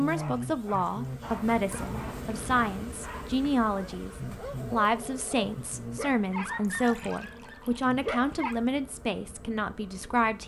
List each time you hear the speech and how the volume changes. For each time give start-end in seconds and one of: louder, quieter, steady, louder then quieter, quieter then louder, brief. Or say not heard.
0.0-10.4 steady.